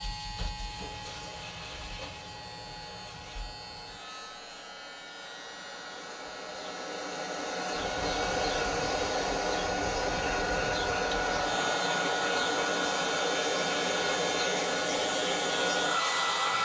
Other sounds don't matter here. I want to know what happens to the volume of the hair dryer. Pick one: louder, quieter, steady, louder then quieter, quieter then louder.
louder.